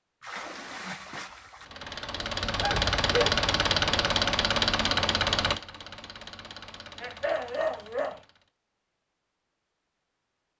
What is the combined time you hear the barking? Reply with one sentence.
The barking can be heard for 2 seconds in total.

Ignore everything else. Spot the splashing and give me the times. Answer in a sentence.
You can hear the splashing from 0.2 to 1.8 s.